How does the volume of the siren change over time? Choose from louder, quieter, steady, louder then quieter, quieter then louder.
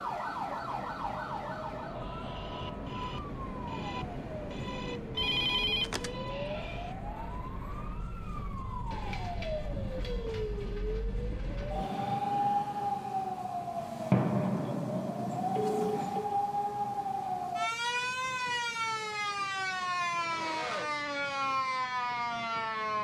louder.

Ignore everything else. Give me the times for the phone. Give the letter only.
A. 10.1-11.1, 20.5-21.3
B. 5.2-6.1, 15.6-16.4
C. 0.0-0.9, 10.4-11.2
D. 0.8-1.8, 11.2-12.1
B.